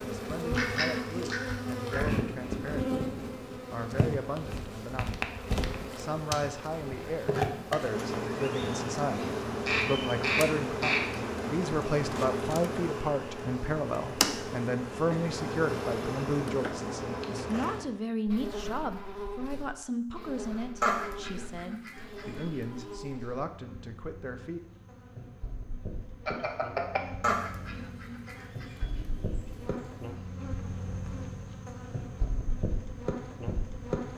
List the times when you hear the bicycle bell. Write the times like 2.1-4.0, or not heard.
26.2-27.0.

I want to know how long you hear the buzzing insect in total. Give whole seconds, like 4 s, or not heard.
34 s.